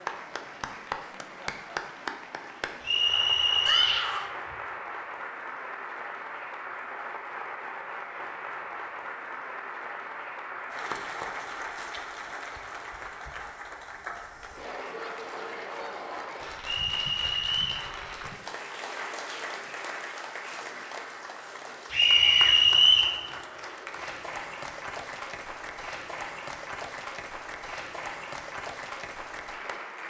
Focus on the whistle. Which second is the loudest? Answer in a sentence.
The volume of the whistle peaks at 23 seconds.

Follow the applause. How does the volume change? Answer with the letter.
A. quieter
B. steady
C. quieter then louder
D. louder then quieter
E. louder
B.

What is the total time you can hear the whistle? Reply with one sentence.
You can hear the whistle for 4 seconds altogether.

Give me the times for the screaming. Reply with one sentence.
The screaming can be heard from 3.6 to 4.3 s and from 21.9 to 22.6 s.